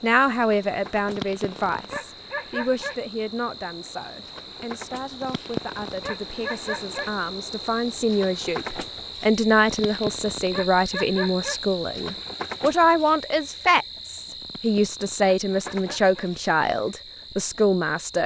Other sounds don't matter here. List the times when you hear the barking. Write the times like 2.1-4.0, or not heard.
1.1-3.0, 5.2-7.1, 9.7-11.6, 14.4-16.3.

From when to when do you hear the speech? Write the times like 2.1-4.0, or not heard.
0.0-18.2.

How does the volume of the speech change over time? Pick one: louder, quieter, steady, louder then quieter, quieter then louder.
quieter then louder.